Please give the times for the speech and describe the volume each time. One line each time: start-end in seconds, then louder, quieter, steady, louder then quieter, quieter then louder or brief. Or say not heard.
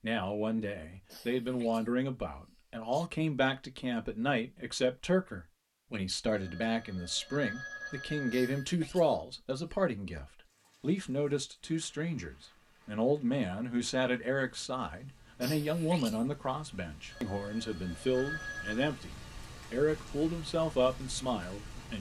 0.0-21.9 steady.